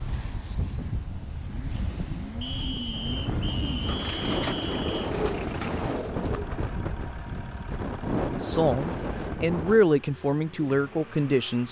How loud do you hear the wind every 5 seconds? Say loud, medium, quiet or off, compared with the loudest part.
loud, loud, off.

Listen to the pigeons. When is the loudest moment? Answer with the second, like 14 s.
5 s.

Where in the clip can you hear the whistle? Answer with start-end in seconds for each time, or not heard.
2.4-5.1.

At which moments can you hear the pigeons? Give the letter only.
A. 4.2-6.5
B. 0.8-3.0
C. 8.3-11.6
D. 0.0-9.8
A.